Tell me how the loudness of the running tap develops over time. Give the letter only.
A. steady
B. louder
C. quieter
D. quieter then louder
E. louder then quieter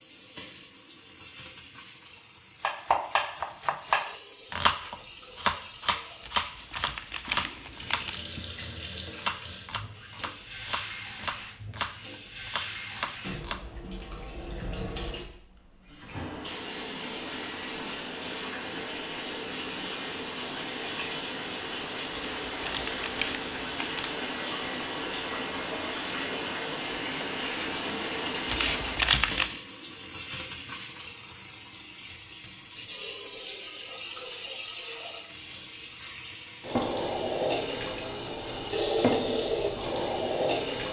B.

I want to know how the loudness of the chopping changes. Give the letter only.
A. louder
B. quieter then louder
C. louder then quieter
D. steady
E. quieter
E.